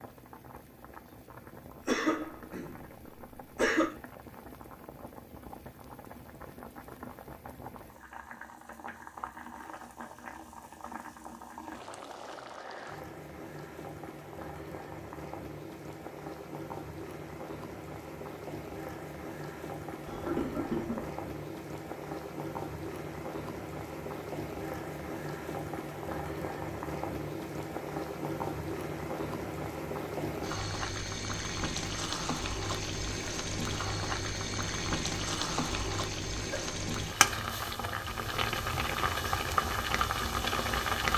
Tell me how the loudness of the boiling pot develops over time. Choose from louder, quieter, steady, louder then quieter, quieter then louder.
louder.